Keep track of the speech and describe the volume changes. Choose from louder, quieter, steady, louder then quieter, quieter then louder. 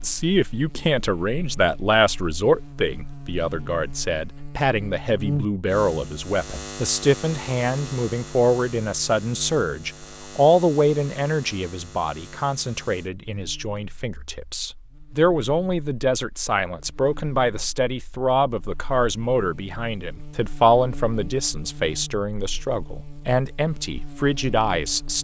steady.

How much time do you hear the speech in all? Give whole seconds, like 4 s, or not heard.
25 s.